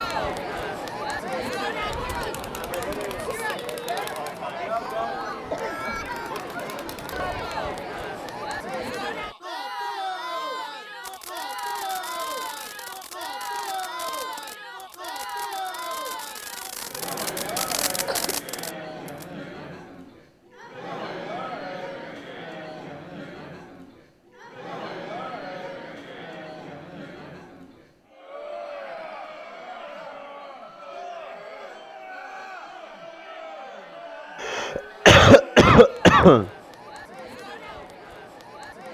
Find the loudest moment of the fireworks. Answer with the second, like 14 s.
18 s.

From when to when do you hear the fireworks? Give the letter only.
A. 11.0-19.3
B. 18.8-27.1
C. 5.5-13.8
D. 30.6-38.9
A.